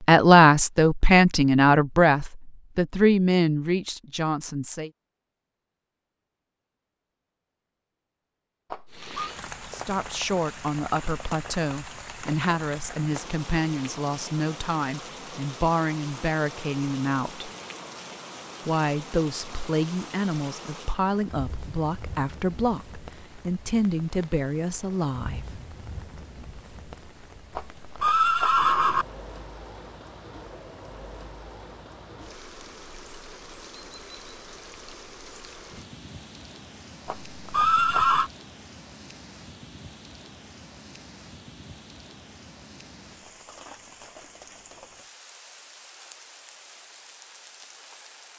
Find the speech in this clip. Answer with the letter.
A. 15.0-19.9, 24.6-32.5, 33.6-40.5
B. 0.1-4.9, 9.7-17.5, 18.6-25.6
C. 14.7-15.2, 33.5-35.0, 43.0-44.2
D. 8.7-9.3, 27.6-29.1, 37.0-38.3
B.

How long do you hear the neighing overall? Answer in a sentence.
You can hear the neighing for 3 seconds altogether.